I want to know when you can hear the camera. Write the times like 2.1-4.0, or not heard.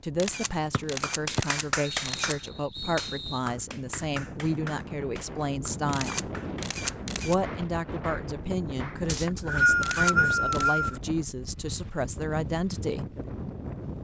0.1-2.4, 5.9-7.3, 9.8-10.8.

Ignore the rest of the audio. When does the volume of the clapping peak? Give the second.
2 s.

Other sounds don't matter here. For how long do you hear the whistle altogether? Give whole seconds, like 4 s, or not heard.
5 s.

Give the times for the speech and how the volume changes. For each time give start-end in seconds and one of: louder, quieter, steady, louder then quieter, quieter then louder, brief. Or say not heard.
0.0-6.3 steady
7.2-13.1 steady.